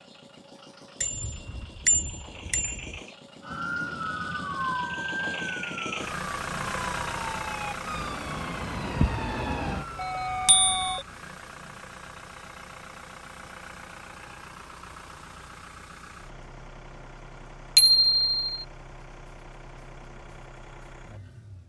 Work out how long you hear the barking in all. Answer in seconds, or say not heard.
not heard.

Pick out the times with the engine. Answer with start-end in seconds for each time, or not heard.
0.0-21.6.